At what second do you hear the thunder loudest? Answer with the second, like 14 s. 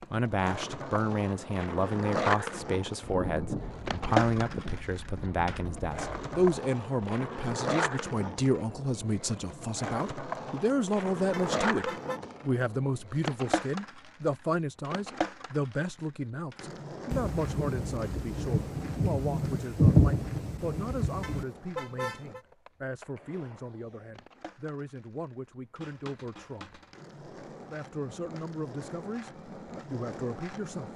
20 s.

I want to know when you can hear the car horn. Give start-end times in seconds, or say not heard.
11.3-12.2, 21.2-22.4.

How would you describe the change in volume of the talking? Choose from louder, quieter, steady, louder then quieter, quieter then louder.
quieter.